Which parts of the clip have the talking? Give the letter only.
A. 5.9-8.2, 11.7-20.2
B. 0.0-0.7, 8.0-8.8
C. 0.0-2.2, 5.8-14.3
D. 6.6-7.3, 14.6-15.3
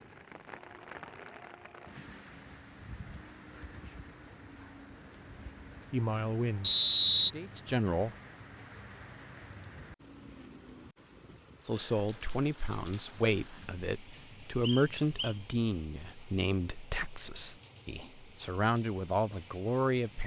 A.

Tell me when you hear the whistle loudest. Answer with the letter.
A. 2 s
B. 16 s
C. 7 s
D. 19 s
C.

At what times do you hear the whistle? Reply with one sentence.
The whistle can be heard from 6.6 to 7.3 s and from 14.6 to 15.3 s.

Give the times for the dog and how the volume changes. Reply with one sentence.
You can't hear the dog here.